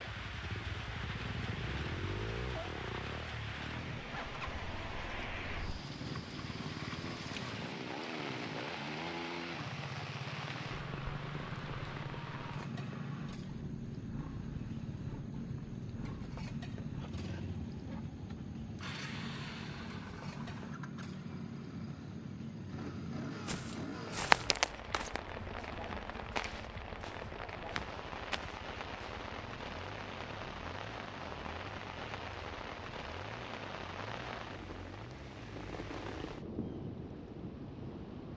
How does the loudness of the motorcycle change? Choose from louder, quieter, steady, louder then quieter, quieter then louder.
quieter.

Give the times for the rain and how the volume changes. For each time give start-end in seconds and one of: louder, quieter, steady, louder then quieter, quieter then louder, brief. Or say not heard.
0.0-38.3 steady.